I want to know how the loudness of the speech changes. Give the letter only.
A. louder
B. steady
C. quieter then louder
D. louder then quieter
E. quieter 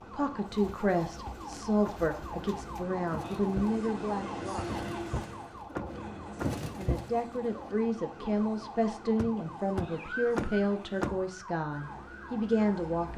B.